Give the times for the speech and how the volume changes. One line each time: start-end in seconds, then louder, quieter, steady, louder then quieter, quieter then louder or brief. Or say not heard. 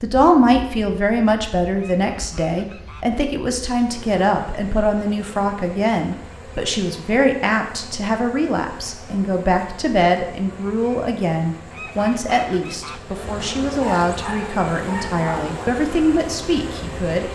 0.0-17.3 steady.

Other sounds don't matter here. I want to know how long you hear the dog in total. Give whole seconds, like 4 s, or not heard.
2 s.